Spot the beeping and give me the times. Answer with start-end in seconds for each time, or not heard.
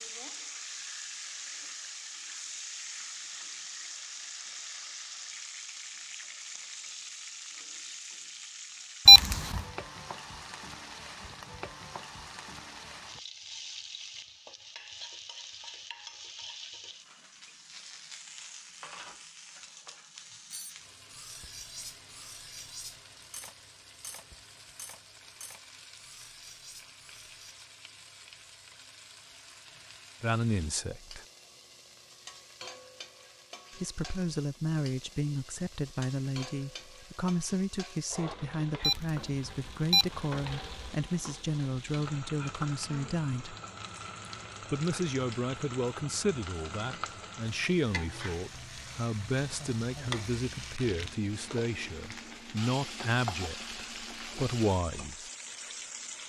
9.1-9.6, 38.8-40.9.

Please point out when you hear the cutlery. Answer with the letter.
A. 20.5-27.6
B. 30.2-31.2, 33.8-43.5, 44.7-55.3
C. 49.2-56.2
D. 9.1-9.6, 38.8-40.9
A.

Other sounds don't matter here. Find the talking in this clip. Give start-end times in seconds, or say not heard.
30.2-31.2, 33.8-43.5, 44.7-55.3.